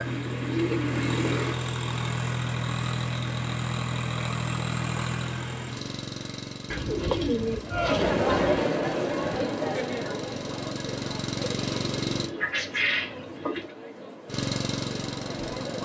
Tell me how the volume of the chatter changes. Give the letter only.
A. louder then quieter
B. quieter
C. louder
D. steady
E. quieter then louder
B.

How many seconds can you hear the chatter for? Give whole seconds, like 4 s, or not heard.
8 s.